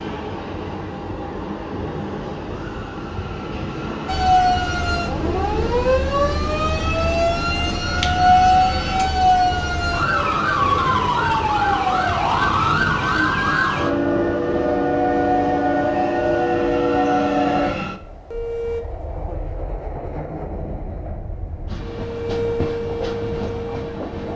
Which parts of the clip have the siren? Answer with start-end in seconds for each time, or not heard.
4.0-18.8, 21.8-24.3.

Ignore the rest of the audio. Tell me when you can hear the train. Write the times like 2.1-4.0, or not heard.
0.0-24.3.